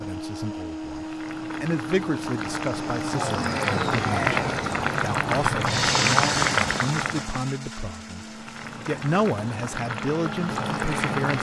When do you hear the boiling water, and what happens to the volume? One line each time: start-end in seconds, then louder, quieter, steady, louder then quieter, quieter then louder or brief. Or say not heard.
0.0-11.3 louder then quieter.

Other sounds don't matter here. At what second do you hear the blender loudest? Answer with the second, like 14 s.
6 s.